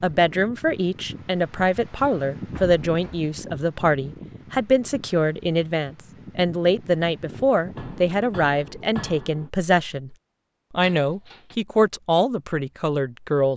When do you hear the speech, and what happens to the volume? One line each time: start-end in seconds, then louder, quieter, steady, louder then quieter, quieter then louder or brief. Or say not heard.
0.0-13.5 steady.